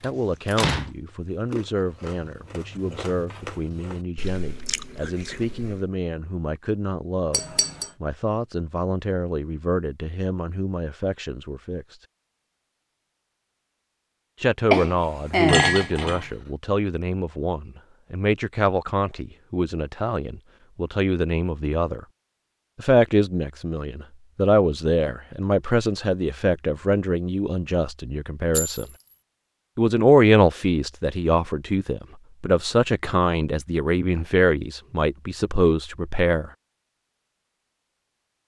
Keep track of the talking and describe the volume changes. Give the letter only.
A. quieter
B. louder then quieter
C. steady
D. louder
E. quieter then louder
D.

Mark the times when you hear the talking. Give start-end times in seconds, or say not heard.
0.0-11.8, 14.4-22.1, 22.8-28.9, 29.8-36.5.